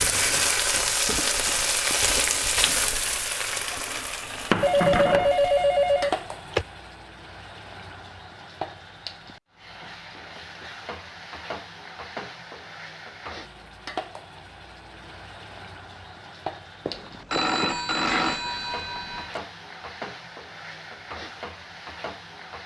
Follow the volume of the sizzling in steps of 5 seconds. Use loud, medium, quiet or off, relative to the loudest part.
loud, medium, quiet, quiet, quiet.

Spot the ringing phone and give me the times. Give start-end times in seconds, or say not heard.
4.6-6.7, 16.9-19.4.